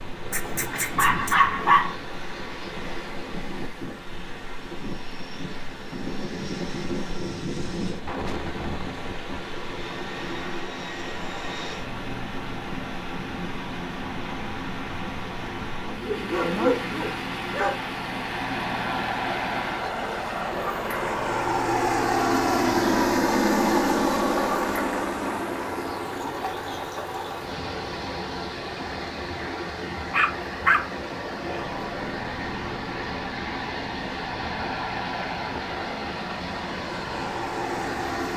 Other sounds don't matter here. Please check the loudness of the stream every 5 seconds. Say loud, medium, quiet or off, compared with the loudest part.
medium, medium, loud, loud, loud, loud, loud, loud.